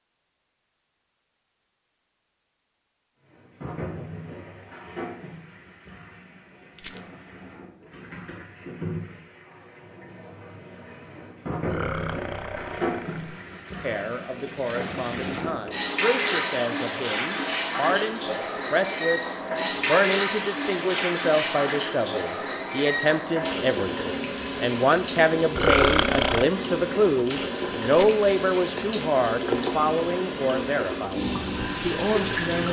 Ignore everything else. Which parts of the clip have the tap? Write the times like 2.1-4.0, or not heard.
3.2-32.6.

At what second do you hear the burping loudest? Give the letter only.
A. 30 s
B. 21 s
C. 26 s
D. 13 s
C.